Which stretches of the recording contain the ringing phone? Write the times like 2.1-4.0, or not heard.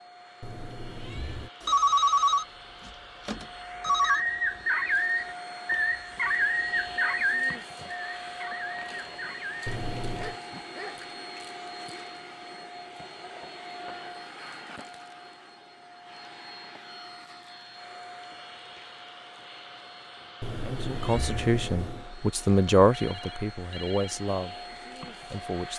1.6-4.2, 22.9-24.2.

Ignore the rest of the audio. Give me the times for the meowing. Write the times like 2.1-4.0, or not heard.
0.4-1.5, 9.7-10.3, 20.4-22.1.